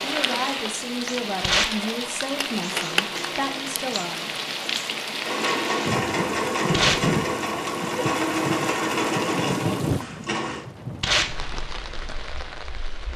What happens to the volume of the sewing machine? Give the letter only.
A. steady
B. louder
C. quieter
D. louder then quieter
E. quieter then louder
B.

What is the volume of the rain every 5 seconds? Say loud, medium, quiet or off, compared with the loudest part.
loud, loud, medium.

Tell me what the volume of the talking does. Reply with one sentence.
The volume of the talking stays about the same.